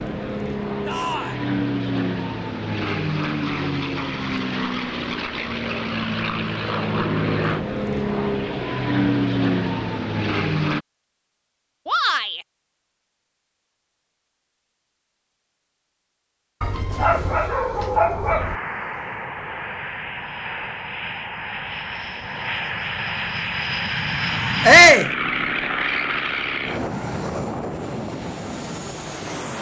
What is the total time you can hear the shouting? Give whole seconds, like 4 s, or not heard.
2 s.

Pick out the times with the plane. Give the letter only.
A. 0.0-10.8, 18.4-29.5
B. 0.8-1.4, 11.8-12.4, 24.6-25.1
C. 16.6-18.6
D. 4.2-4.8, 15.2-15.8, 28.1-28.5
A.